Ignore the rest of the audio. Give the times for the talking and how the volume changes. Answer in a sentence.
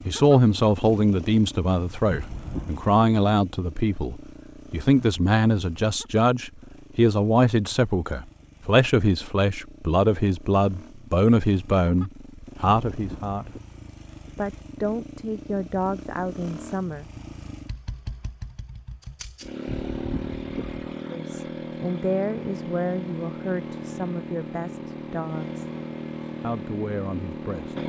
You can hear the talking from 0.1 to 13.6 s, at a steady volume; briefly from 14.3 to 17.1 s; from 21.1 to 25.6 s, getting quieter; and briefly from 26.4 to 27.8 s.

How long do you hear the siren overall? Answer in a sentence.
You can't hear the siren here.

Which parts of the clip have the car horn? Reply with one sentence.
The car horn can be heard from 2.1 to 2.8 s, from 12.9 to 13.6 s and from 19.6 to 20.9 s.